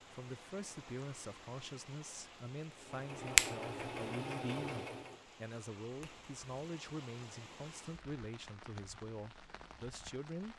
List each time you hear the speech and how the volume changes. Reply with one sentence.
You can hear the speech from 0.1 to 10.5 s, at a steady volume.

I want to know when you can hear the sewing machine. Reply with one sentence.
The sewing machine can be heard from 2.8 to 5.2 s.